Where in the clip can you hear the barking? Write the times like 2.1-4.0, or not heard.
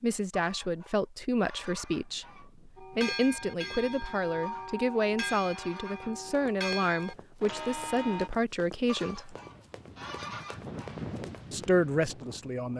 not heard.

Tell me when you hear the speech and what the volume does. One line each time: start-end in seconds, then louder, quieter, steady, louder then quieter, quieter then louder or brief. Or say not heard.
0.0-9.3 steady
11.5-12.7 brief.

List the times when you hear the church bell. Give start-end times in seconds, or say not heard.
2.8-8.3.